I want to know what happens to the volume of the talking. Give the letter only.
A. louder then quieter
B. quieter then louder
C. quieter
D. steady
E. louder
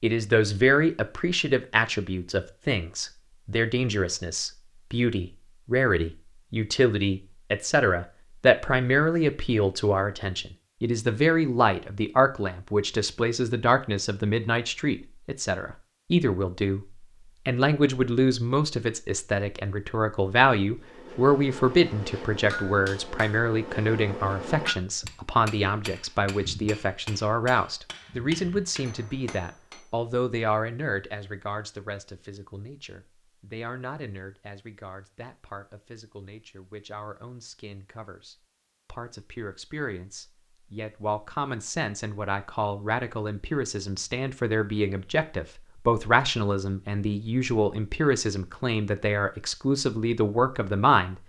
B.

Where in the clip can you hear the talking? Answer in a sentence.
The talking can be heard from 0.0 to 16.9 s and from 17.4 to 51.2 s.